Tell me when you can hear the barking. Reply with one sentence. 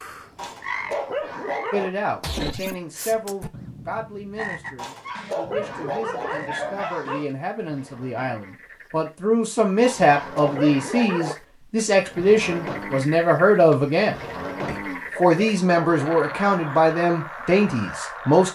The barking can be heard from 0.3 to 1.9 s, from 4.8 to 7.3 s, from 9.8 to 11.3 s and from 14.8 to 16.6 s.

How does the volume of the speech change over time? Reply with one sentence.
The volume of the speech goes up.